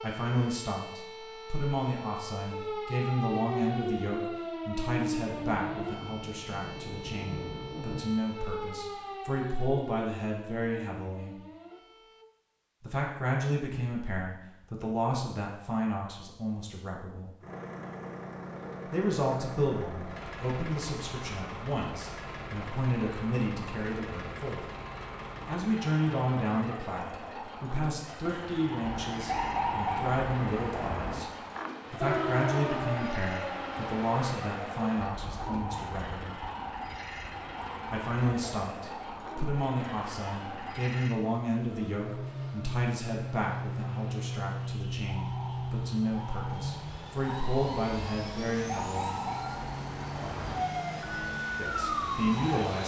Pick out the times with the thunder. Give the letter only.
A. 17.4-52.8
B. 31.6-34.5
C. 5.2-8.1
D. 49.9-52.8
C.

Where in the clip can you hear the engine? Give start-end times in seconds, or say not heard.
17.4-52.8.